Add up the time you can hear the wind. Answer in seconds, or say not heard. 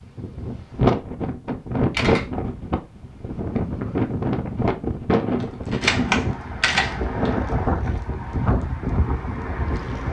10 s.